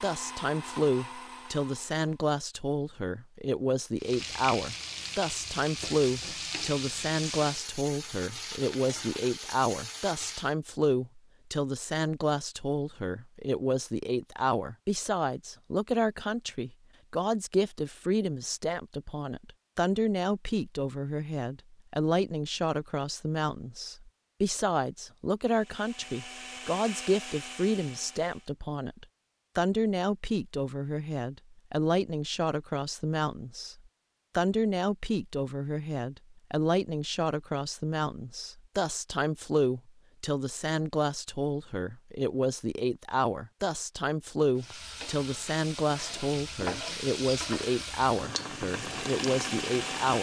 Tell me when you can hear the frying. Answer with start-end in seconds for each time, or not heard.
4.0-10.6, 44.5-50.1.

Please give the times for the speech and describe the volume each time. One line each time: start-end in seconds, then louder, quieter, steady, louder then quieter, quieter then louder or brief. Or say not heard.
0.0-50.1 steady.